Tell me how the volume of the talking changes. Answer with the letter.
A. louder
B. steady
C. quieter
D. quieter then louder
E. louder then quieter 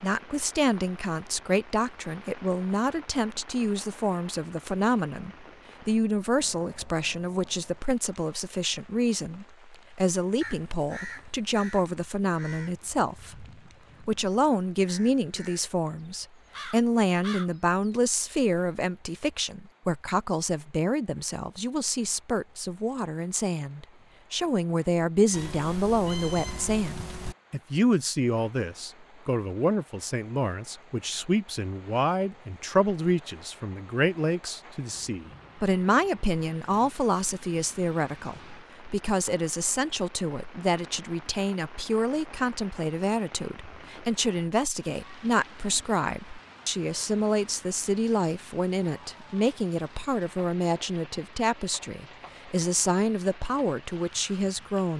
B.